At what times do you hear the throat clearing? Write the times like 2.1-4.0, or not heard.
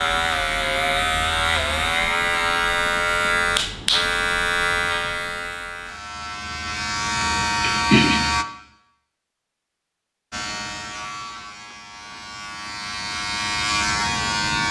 7.2-8.2.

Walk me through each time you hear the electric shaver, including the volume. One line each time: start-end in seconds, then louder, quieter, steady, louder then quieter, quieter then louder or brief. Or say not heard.
0.0-8.4 quieter then louder
10.3-14.6 quieter then louder.